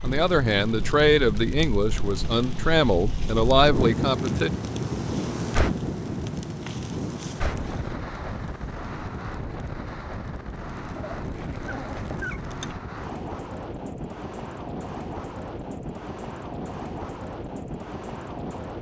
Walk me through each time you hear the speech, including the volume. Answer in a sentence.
You can hear the speech from 0.0 to 4.5 s, getting quieter then louder.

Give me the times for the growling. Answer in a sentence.
You can hear the growling from 10.9 to 12.4 s.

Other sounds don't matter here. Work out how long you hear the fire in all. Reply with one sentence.
You can hear the fire for 13 seconds altogether.